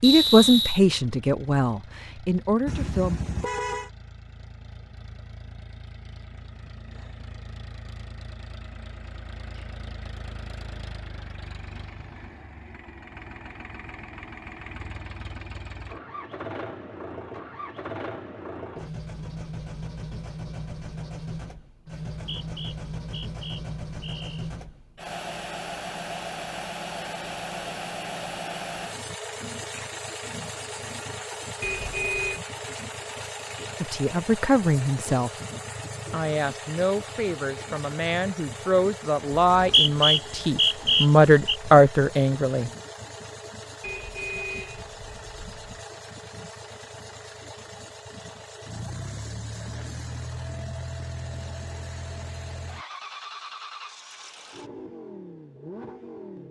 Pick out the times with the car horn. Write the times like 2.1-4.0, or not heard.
2.6-3.9, 31.6-32.4, 43.8-45.9.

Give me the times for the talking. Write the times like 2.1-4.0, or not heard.
0.0-3.2, 33.8-35.3, 36.1-42.7.